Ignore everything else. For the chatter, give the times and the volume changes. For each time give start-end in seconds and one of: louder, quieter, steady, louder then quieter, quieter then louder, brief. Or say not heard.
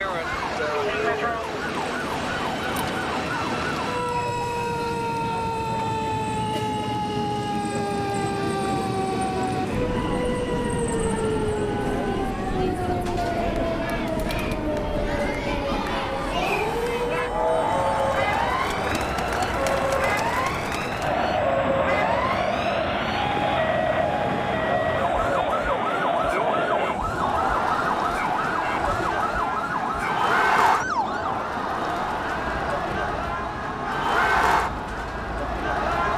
0.0-36.1 louder.